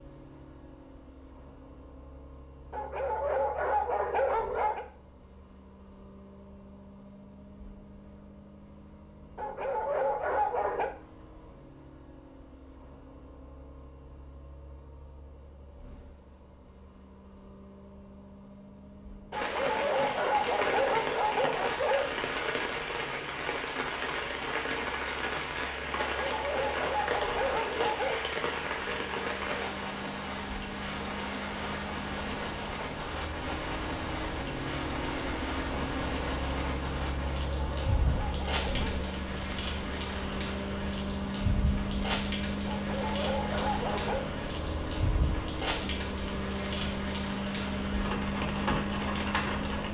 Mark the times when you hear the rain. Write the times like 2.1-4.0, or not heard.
19.3-49.8.